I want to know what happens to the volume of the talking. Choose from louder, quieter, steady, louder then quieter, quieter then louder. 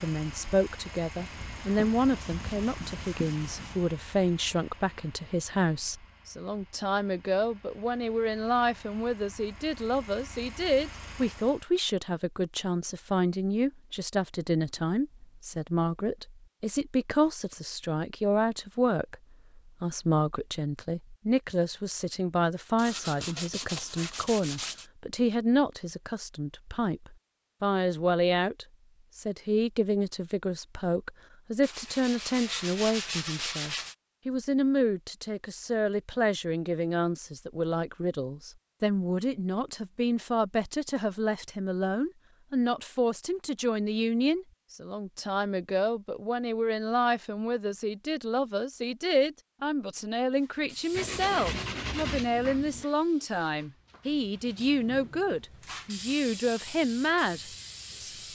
steady.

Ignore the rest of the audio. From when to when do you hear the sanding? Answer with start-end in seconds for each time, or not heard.
1.1-3.9, 22.8-24.9, 31.6-34.0, 50.9-52.9.